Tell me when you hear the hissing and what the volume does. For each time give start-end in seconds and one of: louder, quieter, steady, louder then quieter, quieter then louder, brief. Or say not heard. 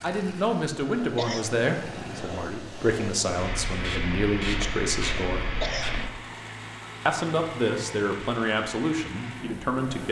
0.1-6.1 louder.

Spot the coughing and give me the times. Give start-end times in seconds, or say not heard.
1.1-1.6, 5.6-6.1.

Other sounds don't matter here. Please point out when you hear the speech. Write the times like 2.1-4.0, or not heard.
0.0-5.5, 7.0-10.0.